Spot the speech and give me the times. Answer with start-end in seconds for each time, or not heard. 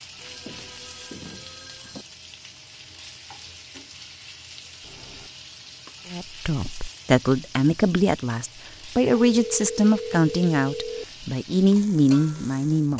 6.1-12.9.